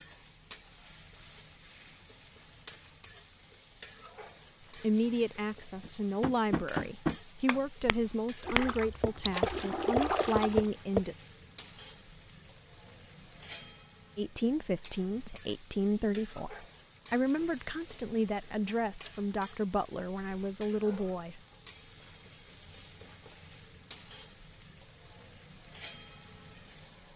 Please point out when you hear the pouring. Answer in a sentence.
The pouring can be heard from 8.4 to 10.7 s.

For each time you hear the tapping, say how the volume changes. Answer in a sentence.
You can hear the tapping from 5.8 to 11.1 s, getting quieter then louder.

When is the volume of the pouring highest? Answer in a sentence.
The volume of the pouring peaks at 10 seconds.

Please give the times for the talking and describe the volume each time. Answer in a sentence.
The talking can be heard from 4.7 to 11.2 s, at a steady volume; and from 14.2 to 21.4 s, at a steady volume.